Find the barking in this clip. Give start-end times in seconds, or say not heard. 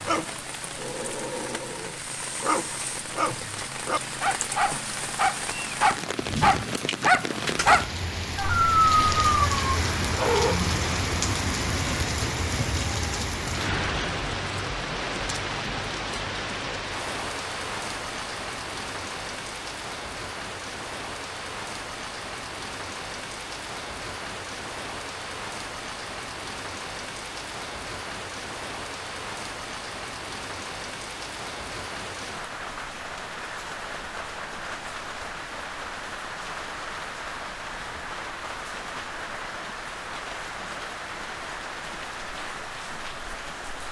0.1-10.6.